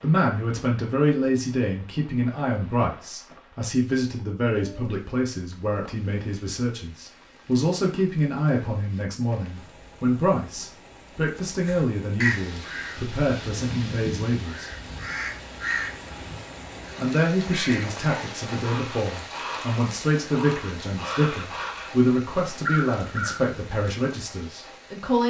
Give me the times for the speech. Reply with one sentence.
You can hear the speech from 0.0 to 14.7 s and from 16.9 to 25.2 s.